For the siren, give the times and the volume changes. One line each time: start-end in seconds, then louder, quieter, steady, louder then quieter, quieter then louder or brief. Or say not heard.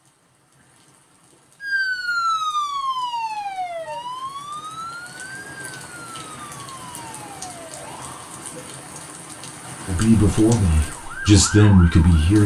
1.6-8.5 quieter
10.8-12.3 brief.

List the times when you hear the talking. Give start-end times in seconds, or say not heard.
9.8-12.4.